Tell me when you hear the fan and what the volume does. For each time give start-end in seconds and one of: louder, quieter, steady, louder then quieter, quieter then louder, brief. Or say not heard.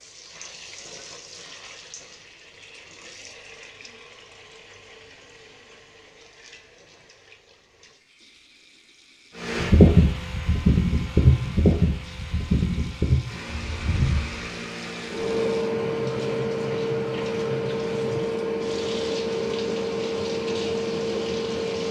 9.4-21.8 quieter.